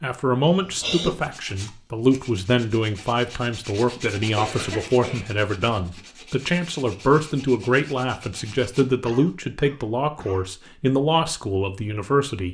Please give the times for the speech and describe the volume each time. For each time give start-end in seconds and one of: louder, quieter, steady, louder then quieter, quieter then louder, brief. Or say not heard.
0.0-12.4 steady.